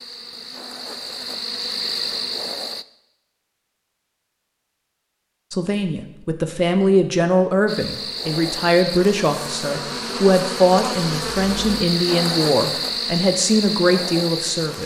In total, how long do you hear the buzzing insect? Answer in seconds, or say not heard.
10 s.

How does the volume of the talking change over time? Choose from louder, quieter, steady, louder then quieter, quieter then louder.
steady.